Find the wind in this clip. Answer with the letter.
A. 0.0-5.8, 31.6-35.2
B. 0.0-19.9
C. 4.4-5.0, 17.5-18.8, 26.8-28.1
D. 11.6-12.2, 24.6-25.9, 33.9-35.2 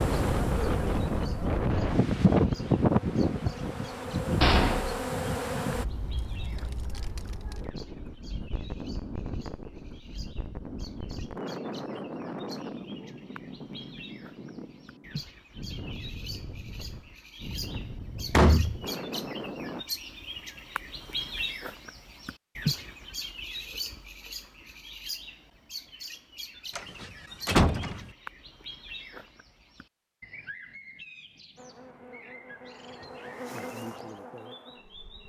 B.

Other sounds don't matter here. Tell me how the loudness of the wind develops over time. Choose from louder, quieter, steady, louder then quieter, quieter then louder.
quieter.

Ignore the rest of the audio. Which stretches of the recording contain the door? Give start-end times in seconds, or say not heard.
4.4-5.0, 17.5-18.8, 26.8-28.1.